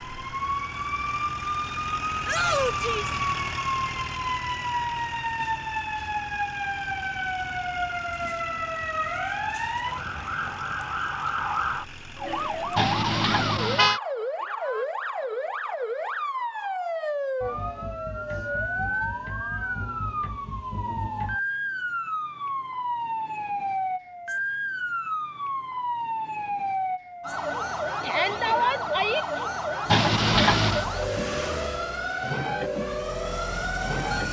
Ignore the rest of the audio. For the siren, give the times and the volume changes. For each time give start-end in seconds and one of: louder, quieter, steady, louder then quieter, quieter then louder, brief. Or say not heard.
0.0-34.2 steady.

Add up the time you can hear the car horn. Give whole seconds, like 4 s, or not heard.
2 s.